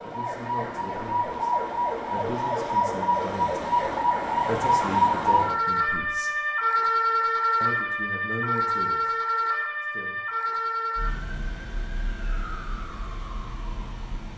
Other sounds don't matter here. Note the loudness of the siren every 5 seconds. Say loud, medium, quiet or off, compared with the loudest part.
loud, loud, medium.